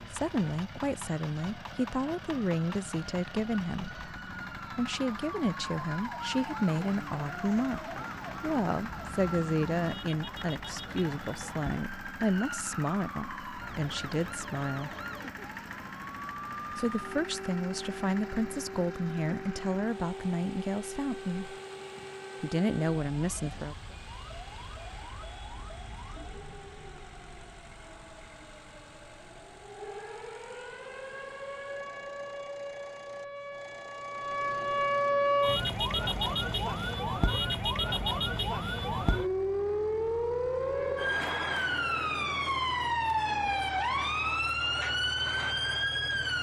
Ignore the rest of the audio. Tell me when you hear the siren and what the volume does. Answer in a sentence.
You can hear the siren from 0.0 to 46.3 s, getting louder.